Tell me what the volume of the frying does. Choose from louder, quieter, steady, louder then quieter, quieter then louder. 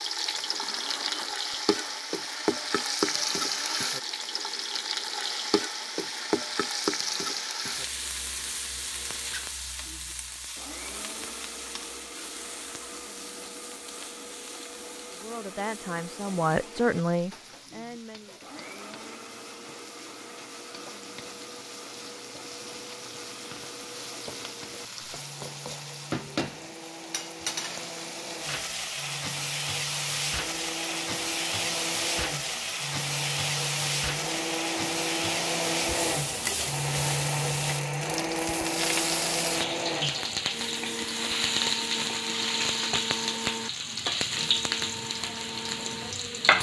quieter then louder.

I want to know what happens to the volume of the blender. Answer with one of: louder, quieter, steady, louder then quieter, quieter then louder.
louder.